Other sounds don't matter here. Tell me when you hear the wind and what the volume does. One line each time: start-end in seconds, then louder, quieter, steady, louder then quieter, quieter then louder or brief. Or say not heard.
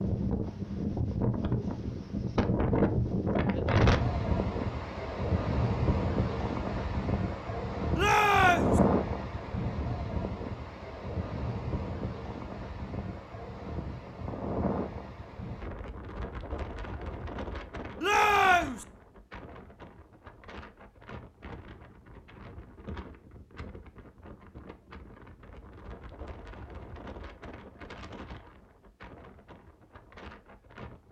0.0-31.0 quieter.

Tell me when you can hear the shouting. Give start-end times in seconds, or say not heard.
8.0-8.8, 18.0-18.9.